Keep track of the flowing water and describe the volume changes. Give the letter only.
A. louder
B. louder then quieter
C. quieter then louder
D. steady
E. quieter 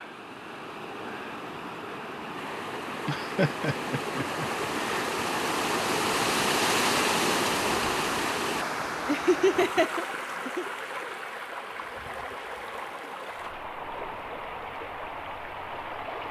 B.